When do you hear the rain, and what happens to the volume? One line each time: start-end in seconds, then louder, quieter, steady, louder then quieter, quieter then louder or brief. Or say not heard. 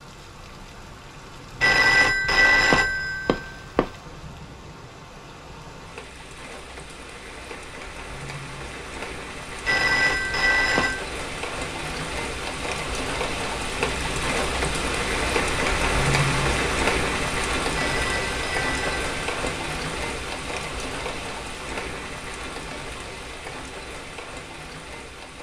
0.0-25.3 louder then quieter.